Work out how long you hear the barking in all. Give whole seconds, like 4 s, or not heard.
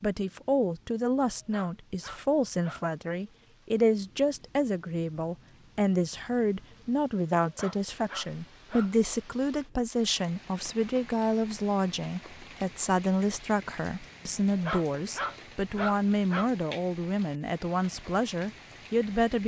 5 s.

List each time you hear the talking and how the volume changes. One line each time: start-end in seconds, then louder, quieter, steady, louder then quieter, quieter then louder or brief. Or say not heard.
0.0-19.4 steady.